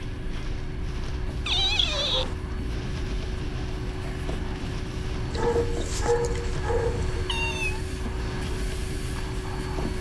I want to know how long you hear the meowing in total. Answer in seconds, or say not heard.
2 s.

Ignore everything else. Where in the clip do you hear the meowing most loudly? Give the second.
2 s.